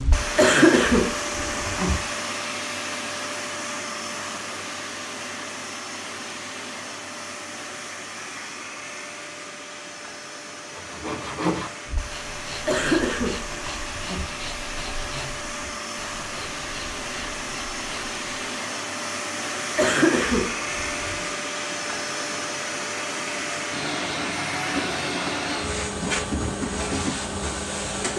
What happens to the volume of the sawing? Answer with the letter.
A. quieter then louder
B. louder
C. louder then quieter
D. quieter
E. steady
D.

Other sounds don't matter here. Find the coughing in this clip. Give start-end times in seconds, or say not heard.
0.3-1.9, 12.7-14.2, 19.8-21.2.